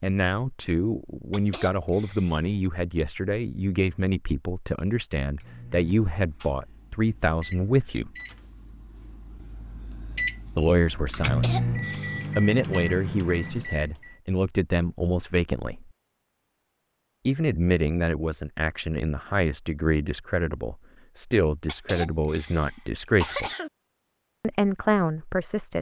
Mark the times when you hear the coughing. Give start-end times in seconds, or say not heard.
1.3-2.5, 11.2-12.8, 21.6-23.7.